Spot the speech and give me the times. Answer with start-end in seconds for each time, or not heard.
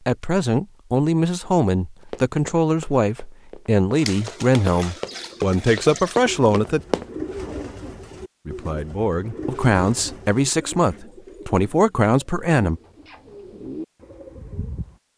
0.1-6.8, 8.4-12.8.